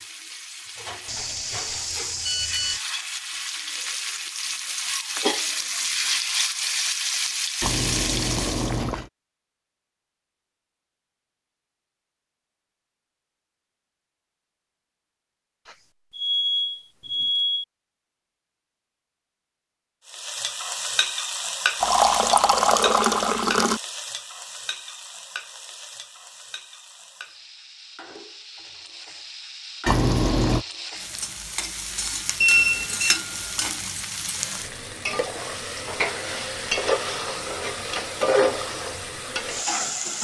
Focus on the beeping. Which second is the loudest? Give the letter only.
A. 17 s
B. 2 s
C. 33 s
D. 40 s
C.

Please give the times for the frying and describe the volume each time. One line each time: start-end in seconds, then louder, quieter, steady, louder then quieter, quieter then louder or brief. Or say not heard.
0.0-8.8 louder
20.1-40.1 quieter then louder.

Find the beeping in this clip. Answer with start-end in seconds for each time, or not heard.
1.1-2.8, 15.7-17.6, 32.4-33.2.